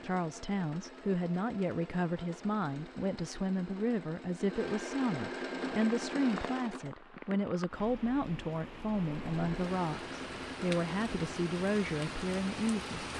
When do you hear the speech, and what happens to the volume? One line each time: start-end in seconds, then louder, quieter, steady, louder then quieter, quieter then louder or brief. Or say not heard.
0.0-13.1 steady.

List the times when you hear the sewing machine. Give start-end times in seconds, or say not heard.
0.0-7.0, 9.0-13.1.